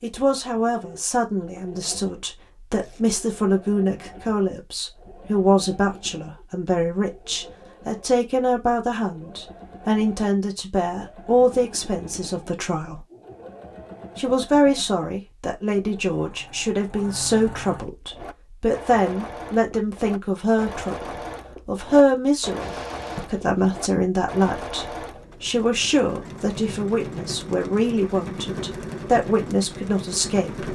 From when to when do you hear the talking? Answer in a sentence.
The talking can be heard from 0.0 to 13.0 s and from 14.2 to 30.7 s.